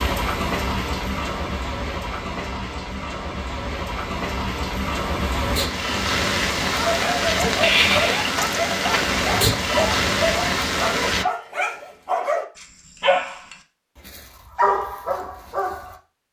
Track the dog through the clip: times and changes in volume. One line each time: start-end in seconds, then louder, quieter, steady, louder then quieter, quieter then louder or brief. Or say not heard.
6.7-15.9 steady.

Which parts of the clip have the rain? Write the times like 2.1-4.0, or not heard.
0.0-11.2.